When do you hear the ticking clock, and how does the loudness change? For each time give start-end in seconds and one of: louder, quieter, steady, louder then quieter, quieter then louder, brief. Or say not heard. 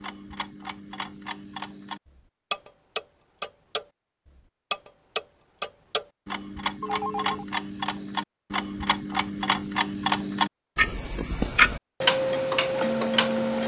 0.0-13.6 louder.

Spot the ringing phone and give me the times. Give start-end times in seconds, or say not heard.
6.8-7.5.